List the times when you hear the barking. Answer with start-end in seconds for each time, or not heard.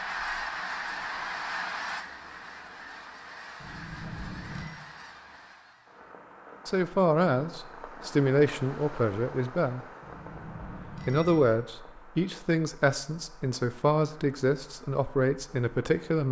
not heard.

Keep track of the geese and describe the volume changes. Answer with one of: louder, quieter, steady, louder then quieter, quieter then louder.
quieter.